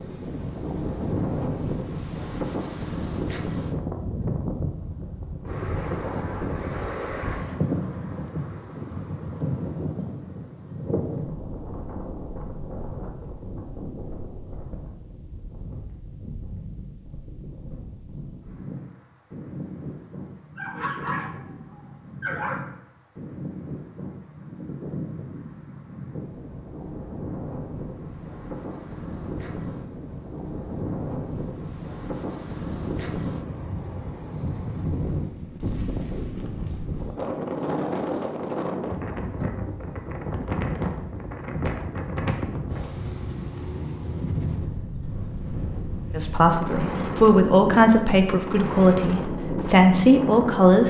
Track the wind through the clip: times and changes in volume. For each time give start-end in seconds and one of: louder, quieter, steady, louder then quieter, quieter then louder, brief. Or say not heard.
0.0-50.8 quieter then louder.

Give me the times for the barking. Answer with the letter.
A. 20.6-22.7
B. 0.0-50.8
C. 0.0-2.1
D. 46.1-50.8
A.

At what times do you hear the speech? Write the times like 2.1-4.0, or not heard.
46.1-50.8.